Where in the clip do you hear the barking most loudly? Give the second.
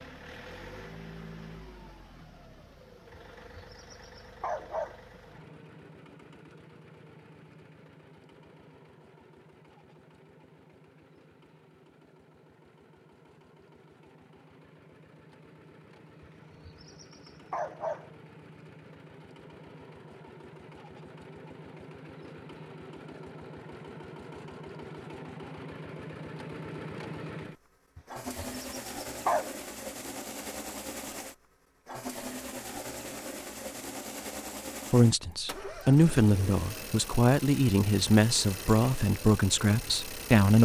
29 s.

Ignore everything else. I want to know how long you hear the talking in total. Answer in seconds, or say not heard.
6 s.